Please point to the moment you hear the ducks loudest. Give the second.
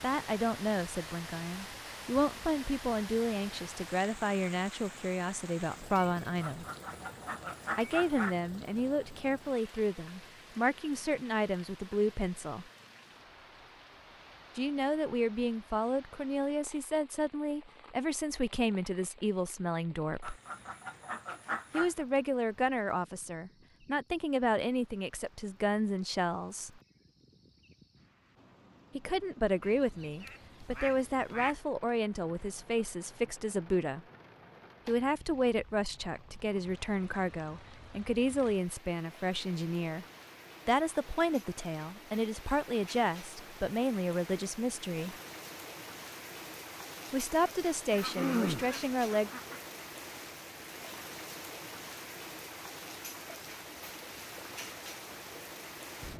48 s.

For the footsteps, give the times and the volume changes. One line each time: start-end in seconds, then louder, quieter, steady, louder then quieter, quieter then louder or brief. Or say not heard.
not heard.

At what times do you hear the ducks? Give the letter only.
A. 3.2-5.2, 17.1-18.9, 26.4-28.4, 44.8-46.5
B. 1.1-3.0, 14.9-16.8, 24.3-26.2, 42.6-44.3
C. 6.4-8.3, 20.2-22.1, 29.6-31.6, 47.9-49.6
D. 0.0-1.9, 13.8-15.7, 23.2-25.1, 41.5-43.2
C.